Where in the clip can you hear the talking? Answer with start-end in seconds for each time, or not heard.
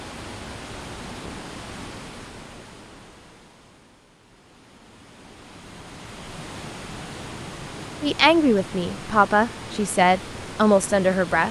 8.0-11.4.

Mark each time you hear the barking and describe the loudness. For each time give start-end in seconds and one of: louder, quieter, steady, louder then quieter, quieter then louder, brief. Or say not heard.
not heard.